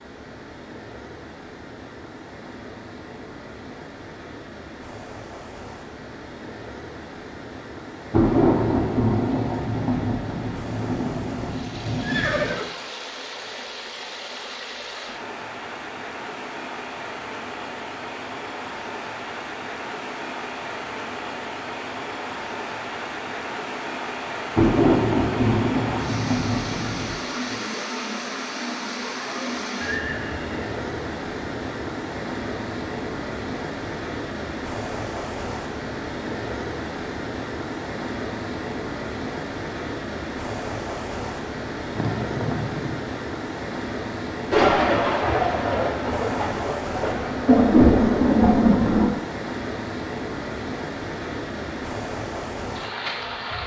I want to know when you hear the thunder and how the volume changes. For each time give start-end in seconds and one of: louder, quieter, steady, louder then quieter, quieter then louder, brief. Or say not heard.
8.1-12.6 quieter
24.6-27.1 brief
44.5-49.1 quieter then louder.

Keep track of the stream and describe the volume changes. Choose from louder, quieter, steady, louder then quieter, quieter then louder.
louder.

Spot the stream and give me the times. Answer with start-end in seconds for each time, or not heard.
0.0-53.6.